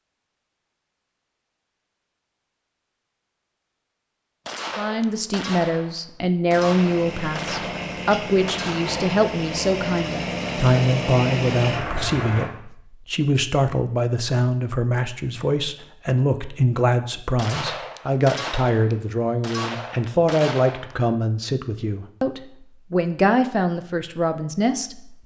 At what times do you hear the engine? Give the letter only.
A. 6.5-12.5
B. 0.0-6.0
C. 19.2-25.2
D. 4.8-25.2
A.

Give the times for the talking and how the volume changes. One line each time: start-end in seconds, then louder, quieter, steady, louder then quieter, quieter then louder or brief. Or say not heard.
4.8-25.2 steady.